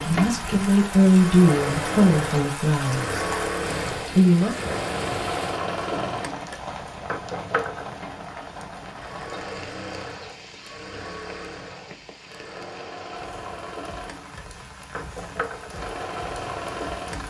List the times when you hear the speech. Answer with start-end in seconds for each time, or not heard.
0.0-3.2, 4.2-4.7.